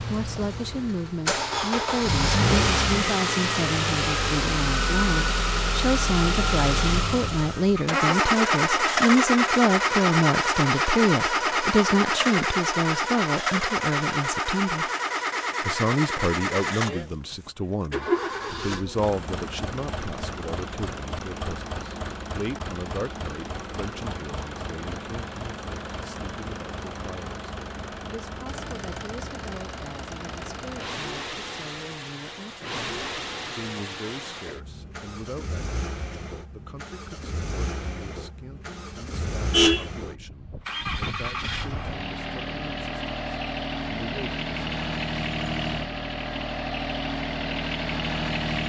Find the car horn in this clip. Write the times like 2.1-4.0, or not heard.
39.1-39.9.